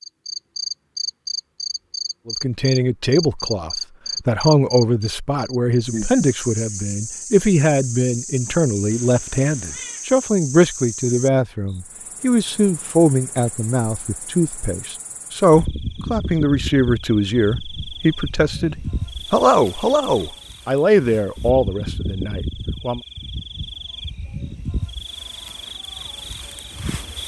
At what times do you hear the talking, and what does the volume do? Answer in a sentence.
The talking can be heard from 2.2 to 23.0 s, at a steady volume.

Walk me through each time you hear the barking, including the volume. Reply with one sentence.
You can't hear the barking here.